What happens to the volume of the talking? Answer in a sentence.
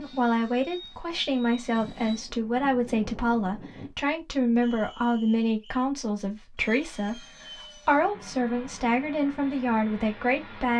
The loudness of the talking stays about the same.